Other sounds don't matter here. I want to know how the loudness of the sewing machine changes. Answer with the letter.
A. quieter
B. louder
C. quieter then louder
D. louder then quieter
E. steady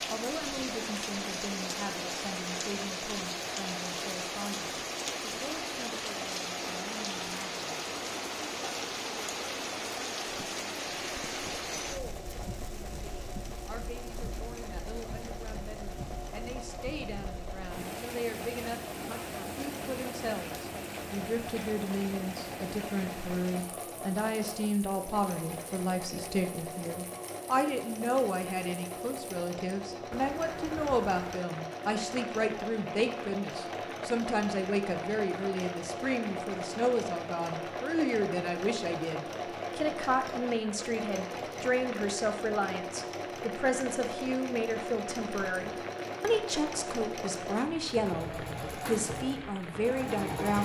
B.